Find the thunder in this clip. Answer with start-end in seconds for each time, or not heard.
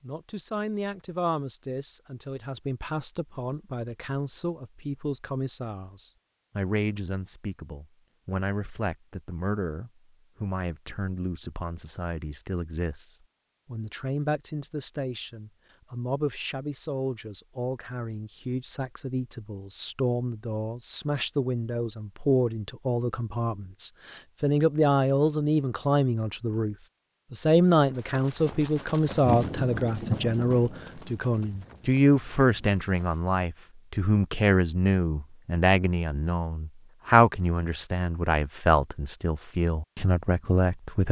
29.1-32.8.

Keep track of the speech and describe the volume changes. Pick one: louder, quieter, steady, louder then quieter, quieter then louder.
louder.